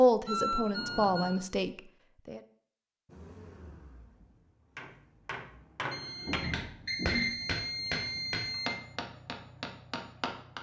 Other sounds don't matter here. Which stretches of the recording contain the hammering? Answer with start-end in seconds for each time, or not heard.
4.8-10.5.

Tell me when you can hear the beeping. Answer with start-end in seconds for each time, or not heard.
0.2-1.4, 5.9-8.7.